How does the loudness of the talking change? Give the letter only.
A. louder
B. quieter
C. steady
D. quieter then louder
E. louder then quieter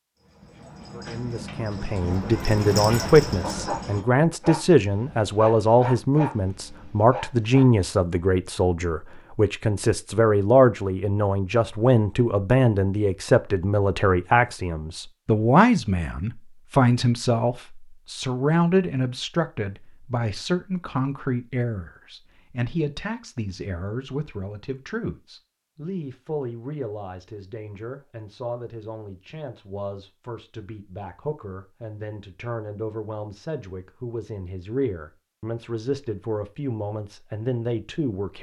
B.